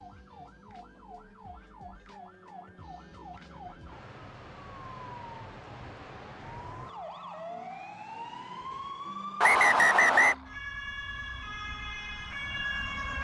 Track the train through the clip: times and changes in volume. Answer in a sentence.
The train can't be heard in this clip.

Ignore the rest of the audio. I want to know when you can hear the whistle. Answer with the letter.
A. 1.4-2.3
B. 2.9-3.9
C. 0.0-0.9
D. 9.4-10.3
D.